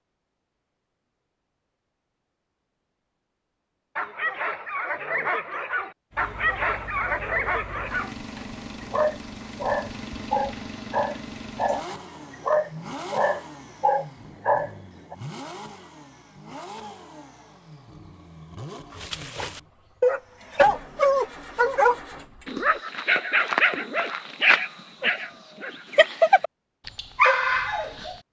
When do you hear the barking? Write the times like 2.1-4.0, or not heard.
4.0-15.2, 18.9-28.1.